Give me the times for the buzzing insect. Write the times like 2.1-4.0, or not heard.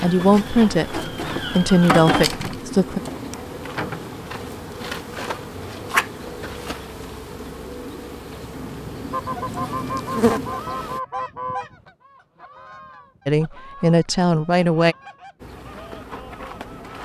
0.0-11.0, 15.4-17.0.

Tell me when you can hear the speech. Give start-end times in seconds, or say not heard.
0.0-3.0, 13.2-14.9.